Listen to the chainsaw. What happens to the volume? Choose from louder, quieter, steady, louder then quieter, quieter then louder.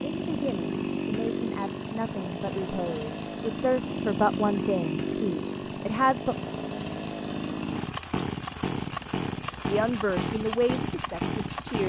steady.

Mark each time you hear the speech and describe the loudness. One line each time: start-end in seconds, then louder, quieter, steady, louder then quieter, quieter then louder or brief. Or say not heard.
0.1-6.3 louder then quieter
9.7-11.8 brief.